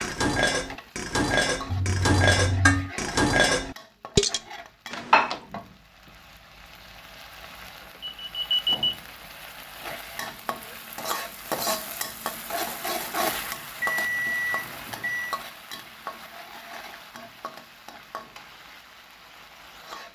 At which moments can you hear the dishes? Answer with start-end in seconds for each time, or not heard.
0.0-5.4.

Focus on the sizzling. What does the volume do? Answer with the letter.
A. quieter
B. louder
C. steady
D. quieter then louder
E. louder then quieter
E.